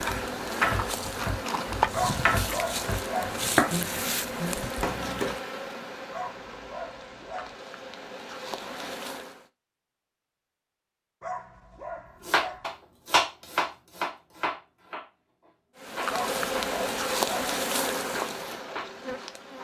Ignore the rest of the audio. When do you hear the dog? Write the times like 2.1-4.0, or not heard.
1.9-3.4, 6.1-7.5, 11.2-12.7, 16.1-17.6.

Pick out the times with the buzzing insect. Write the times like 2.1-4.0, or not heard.
0.0-9.4, 15.8-19.5.